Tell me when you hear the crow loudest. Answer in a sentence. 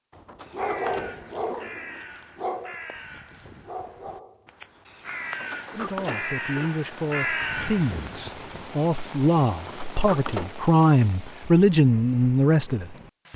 The loudest moment of the crow is at 7 seconds.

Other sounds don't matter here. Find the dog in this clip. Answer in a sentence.
You can hear the dog from 0.1 to 5.0 s.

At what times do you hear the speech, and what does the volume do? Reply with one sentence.
The speech can be heard from 5.7 to 13.3 s, getting louder.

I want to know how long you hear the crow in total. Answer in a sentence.
You can hear the crow for 8 seconds altogether.